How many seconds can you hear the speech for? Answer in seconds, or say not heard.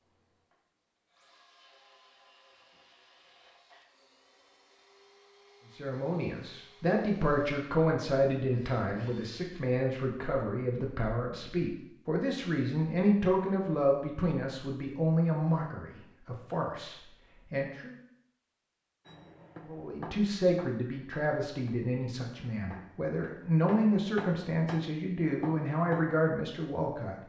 20 s.